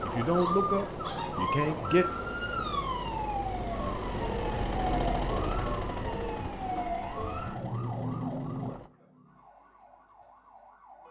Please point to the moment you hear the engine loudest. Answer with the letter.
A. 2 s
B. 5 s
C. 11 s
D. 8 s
B.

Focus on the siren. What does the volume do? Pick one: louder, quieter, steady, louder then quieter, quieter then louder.
quieter.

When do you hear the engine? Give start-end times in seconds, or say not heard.
0.0-8.9.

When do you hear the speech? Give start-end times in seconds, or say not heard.
0.0-2.0.